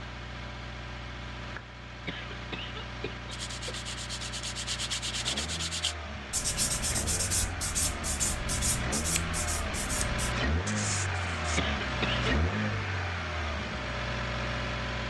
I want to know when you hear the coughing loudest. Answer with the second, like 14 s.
12 s.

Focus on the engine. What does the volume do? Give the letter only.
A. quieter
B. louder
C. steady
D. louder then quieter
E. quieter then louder
B.